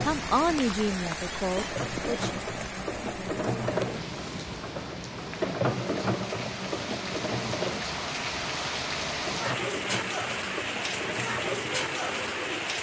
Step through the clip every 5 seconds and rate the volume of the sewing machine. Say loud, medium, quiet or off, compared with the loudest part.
loud, loud, medium.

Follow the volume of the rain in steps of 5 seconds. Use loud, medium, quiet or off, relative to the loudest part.
medium, loud, loud.